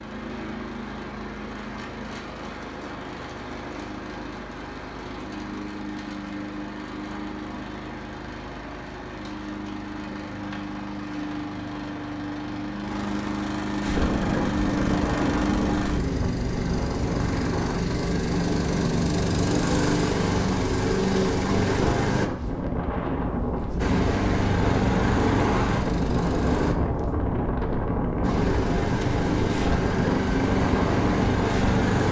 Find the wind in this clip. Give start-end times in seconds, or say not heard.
13.8-32.0.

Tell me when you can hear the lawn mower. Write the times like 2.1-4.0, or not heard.
0.0-22.3, 23.8-26.8, 28.2-32.0.